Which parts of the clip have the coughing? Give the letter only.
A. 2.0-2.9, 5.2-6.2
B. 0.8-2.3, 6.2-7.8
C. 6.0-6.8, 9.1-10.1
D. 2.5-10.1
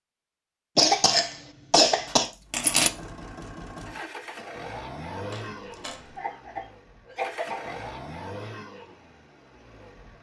B.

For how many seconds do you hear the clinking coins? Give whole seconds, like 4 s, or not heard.
2 s.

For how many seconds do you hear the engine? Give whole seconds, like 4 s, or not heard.
8 s.